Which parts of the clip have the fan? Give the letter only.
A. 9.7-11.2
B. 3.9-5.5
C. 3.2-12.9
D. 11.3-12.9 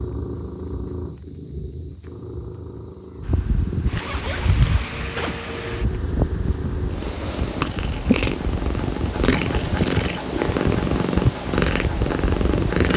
C.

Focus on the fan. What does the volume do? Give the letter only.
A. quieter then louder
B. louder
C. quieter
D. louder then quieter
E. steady
A.